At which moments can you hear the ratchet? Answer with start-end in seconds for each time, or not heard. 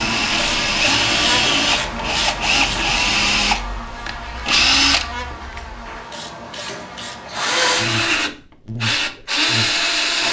0.3-3.0, 6.1-8.0.